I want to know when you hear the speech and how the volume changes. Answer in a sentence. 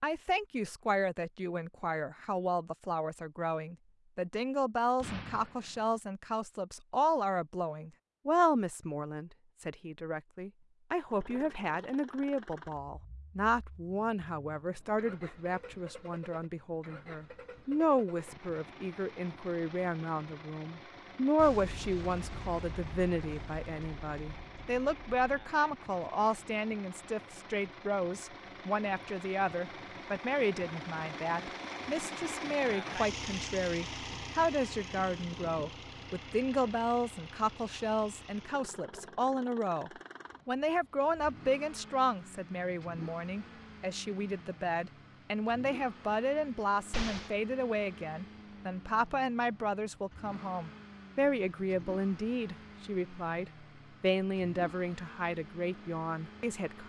You can hear the speech from 0.0 to 56.8 s, at a steady volume.